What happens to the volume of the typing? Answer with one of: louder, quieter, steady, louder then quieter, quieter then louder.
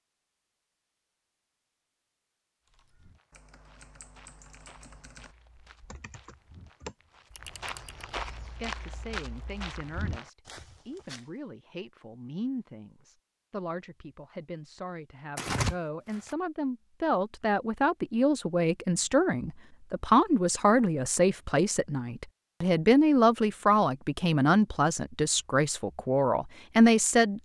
louder.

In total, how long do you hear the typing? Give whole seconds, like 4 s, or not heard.
5 s.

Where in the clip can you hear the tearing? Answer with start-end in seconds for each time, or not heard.
15.3-16.4.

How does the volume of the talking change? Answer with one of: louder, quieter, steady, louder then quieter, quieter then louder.
louder.